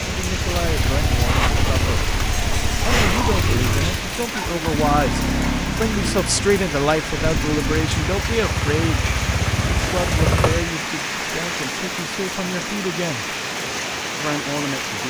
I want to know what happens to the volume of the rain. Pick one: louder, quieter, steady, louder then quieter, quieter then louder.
steady.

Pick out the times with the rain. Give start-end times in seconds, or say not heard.
0.0-15.0.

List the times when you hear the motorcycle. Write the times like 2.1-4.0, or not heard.
0.0-10.8.